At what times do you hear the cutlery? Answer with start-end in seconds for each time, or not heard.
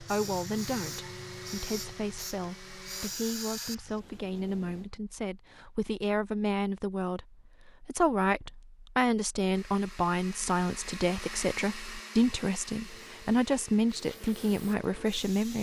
not heard.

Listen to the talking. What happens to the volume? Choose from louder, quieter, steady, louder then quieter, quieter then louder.
louder.